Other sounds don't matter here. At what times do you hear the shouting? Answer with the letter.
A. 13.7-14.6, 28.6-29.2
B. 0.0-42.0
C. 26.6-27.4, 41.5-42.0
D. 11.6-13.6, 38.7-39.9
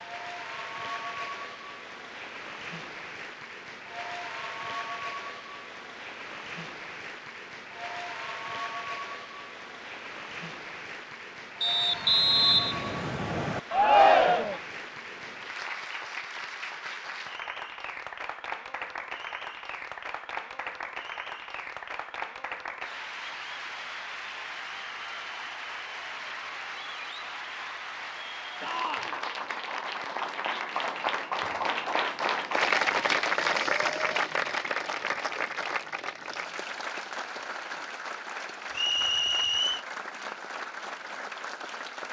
A.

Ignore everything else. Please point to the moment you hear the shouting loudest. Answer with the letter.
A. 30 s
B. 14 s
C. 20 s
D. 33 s
B.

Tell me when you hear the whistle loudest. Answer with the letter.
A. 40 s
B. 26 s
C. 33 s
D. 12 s
D.